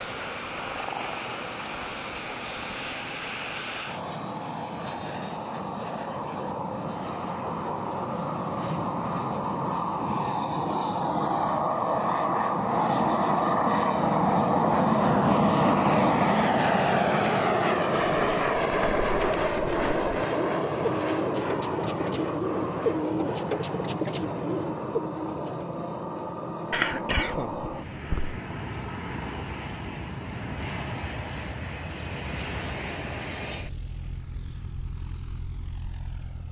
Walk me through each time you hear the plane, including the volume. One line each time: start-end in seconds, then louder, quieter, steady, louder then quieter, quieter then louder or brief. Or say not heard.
0.0-36.4 louder then quieter.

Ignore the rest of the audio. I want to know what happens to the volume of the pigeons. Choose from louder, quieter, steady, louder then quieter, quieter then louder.
louder.